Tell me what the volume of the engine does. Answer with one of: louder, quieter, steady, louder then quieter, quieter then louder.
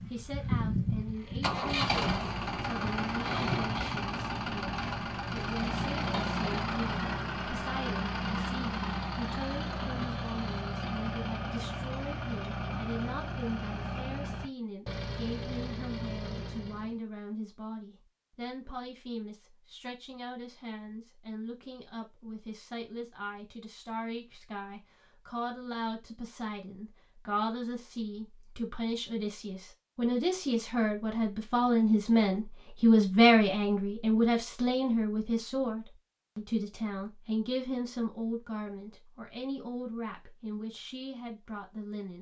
quieter.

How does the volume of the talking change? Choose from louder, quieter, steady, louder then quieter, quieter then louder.
louder then quieter.